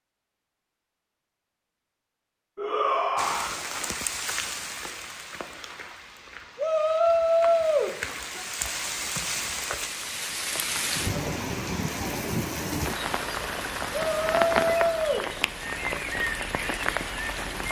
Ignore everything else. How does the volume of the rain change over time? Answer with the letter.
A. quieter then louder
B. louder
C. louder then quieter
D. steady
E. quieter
B.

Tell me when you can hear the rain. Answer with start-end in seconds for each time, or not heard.
3.1-17.6.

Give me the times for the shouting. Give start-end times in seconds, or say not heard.
2.5-3.6, 6.5-8.4, 13.9-15.3.